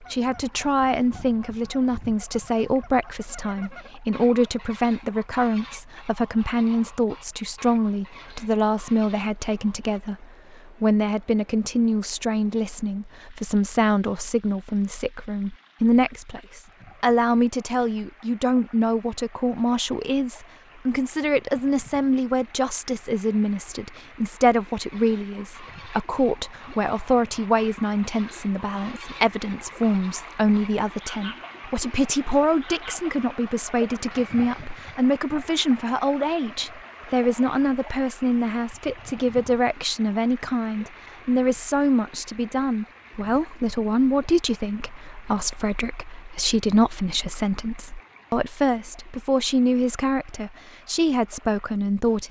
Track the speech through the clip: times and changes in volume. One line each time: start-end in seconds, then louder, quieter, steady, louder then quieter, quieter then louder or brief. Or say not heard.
0.0-52.2 steady.